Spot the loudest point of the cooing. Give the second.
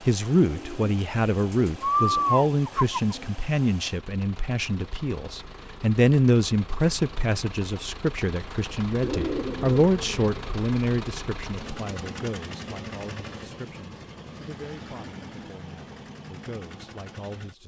2 s.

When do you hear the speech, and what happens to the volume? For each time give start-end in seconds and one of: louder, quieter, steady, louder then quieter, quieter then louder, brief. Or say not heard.
0.0-17.6 quieter.